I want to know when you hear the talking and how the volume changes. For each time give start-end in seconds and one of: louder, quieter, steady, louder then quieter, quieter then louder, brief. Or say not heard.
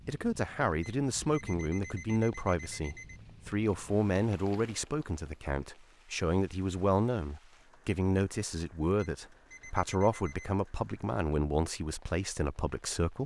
0.1-13.2 steady.